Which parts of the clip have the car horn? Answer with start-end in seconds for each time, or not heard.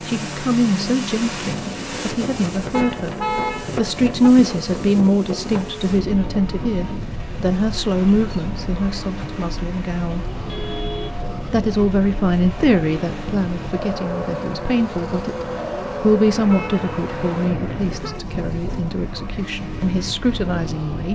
2.7-4.3, 10.4-11.2, 16.2-18.2.